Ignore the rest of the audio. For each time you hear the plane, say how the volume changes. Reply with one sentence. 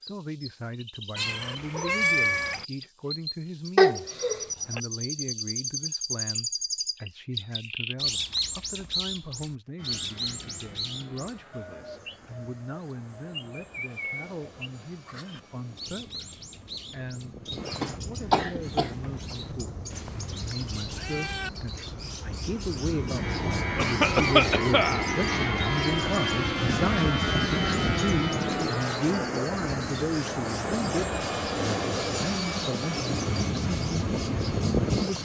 You can hear the plane from 9.8 to 35.2 s, getting louder.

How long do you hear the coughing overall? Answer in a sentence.
The coughing can be heard for 4 seconds in total.